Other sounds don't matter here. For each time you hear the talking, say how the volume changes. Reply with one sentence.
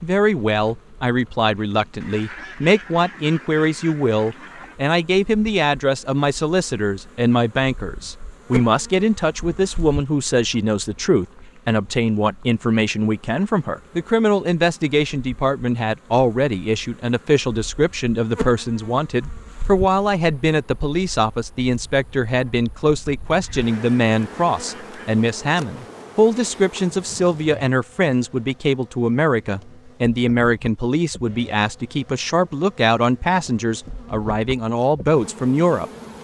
You can hear the talking from 0.0 to 35.9 s, at a steady volume.